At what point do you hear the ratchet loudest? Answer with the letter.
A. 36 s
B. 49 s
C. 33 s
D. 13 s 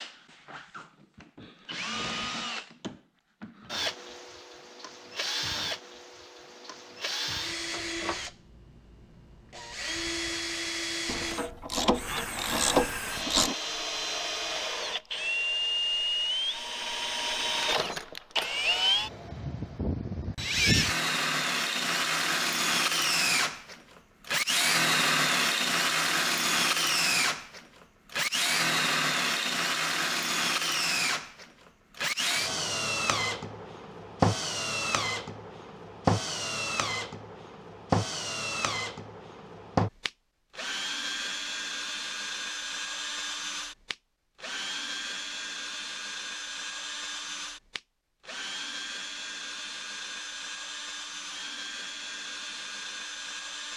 D.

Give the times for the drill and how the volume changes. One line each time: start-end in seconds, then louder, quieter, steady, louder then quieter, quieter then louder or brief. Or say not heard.
0.0-53.7 louder then quieter.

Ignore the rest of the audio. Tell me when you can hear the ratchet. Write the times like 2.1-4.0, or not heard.
11.1-13.6.